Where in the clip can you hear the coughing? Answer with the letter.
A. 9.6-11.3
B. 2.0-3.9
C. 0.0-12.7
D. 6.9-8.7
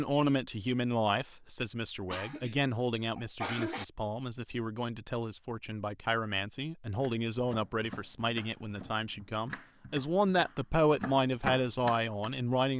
B.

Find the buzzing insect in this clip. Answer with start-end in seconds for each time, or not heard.
not heard.